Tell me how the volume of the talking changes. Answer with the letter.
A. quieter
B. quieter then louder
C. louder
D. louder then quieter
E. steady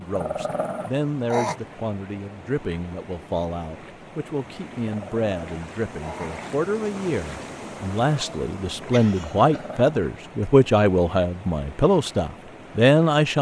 C.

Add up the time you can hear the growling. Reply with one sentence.
You can hear the growling for 4 seconds altogether.